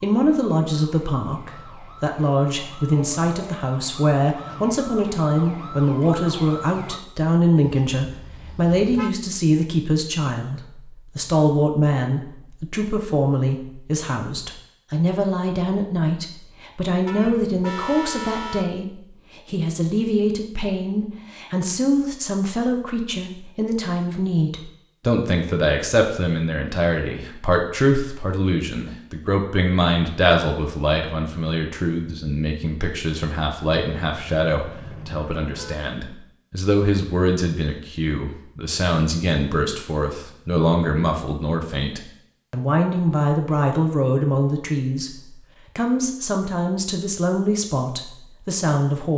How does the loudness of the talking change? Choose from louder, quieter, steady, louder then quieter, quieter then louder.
steady.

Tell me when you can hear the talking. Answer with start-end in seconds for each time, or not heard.
0.0-49.1.